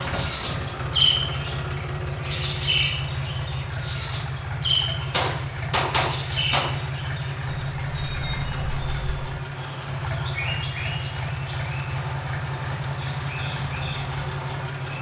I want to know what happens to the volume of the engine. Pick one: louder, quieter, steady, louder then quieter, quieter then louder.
steady.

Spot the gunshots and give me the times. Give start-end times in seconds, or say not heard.
5.0-6.7.